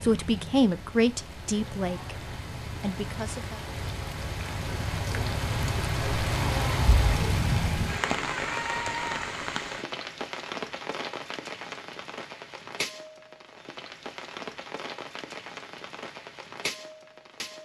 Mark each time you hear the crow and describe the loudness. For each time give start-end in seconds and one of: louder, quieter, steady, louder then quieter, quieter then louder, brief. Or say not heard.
not heard.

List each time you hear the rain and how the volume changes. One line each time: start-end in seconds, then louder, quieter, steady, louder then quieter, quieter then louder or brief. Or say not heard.
0.0-17.6 louder then quieter.